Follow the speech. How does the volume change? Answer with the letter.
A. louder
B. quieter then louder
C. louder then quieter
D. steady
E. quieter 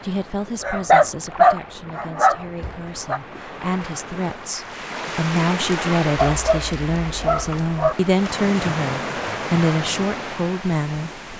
A.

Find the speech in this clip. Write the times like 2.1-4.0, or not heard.
0.0-11.1.